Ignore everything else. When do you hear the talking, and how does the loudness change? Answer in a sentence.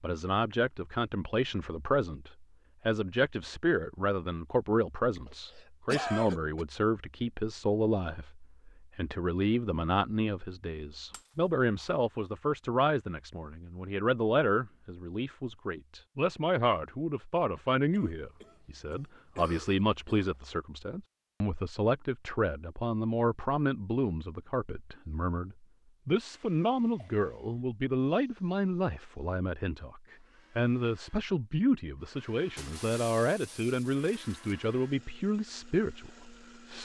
You can hear the talking from 0.0 to 36.8 s, at a steady volume.